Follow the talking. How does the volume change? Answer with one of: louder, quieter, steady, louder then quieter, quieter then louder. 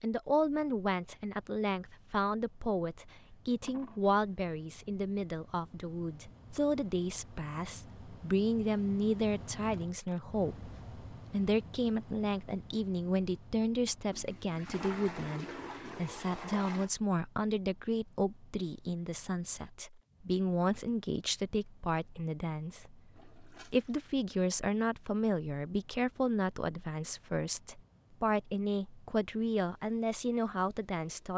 steady.